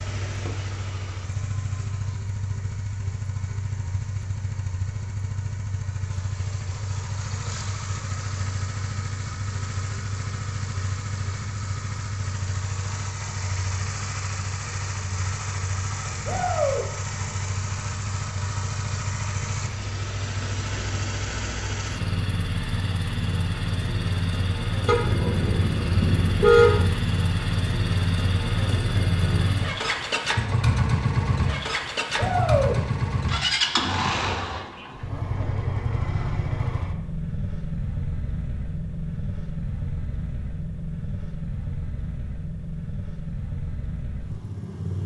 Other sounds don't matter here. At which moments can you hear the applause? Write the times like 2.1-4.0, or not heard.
not heard.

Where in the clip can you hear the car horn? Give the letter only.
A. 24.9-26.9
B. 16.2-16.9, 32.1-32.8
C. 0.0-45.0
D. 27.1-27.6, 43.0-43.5
A.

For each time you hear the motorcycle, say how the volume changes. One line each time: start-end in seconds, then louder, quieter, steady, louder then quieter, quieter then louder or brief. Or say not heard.
0.0-45.0 louder then quieter.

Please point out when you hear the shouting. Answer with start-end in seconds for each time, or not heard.
16.2-16.9, 32.1-32.8.